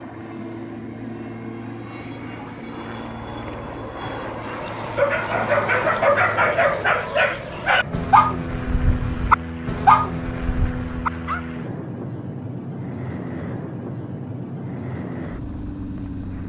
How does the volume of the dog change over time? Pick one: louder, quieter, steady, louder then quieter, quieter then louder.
steady.